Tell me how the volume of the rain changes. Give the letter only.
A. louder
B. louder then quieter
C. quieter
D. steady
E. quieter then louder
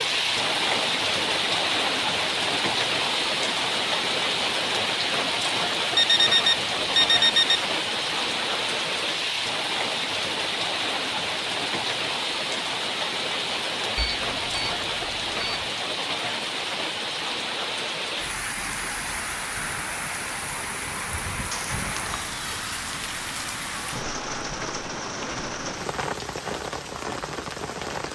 C.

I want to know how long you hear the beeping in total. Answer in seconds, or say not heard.
4 s.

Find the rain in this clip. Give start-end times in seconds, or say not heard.
0.0-28.1.